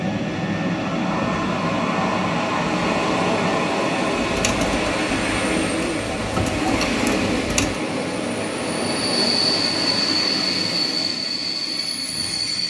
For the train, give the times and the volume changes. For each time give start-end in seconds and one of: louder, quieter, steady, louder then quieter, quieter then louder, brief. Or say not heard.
0.0-12.6 steady.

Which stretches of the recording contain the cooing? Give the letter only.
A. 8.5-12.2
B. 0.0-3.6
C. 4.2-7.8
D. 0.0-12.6
C.